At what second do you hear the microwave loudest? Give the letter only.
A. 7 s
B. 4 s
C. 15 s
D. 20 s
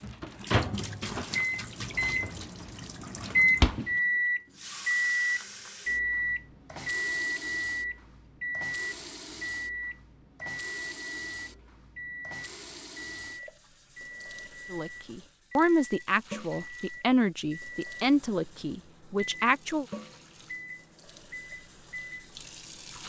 B.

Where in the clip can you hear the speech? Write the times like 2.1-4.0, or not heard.
14.7-19.9.